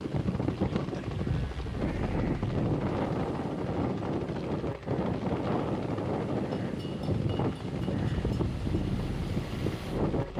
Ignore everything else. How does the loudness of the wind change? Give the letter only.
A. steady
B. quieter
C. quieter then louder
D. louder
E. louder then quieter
A.